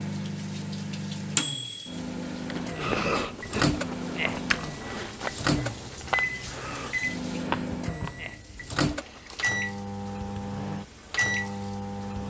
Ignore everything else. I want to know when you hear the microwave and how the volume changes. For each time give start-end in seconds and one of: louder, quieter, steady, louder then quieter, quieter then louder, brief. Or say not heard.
0.0-12.2 steady.